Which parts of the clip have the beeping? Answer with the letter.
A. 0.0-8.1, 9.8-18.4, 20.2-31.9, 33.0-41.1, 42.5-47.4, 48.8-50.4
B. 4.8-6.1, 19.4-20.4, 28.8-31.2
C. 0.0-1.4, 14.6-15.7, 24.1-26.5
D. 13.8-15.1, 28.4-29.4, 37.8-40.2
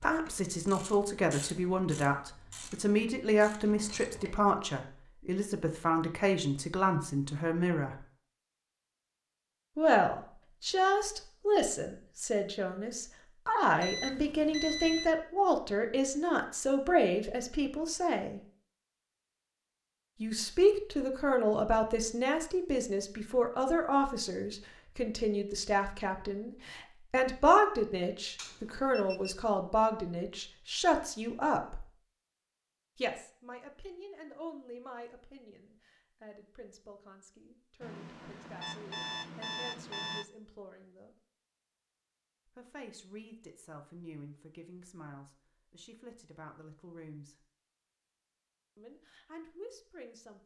D.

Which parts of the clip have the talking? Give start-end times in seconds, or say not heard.
0.0-8.1, 9.8-18.4, 20.2-31.9, 33.0-41.1, 42.5-47.4, 48.8-50.4.